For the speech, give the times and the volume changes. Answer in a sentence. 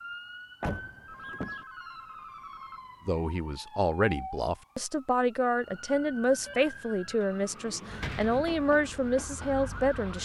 The speech can be heard from 3.0 to 10.1 s, at a steady volume.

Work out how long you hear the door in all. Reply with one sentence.
You can hear the door for 3 seconds altogether.